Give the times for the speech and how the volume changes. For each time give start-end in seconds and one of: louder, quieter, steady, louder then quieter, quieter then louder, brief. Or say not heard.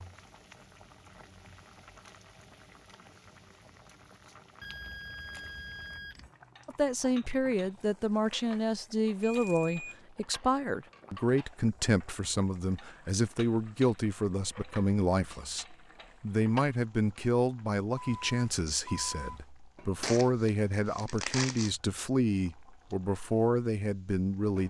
6.7-24.6 steady.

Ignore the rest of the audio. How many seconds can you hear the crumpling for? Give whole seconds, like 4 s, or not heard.
2 s.